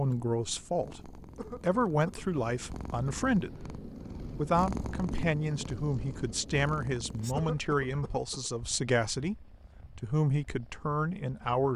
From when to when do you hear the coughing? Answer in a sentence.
You can hear the coughing from 1.4 to 2.2 s and from 7.3 to 8.5 s.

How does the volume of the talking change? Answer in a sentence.
The loudness of the talking stays about the same.